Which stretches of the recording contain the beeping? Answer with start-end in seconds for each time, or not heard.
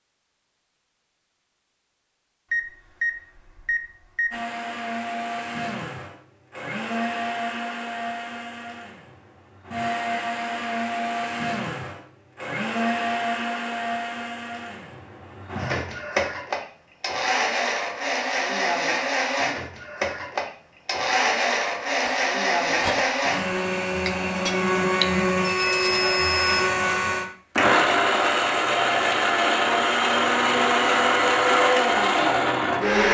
2.5-4.3, 25.4-26.6.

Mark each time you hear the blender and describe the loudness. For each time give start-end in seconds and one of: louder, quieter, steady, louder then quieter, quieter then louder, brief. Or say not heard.
4.3-33.1 louder.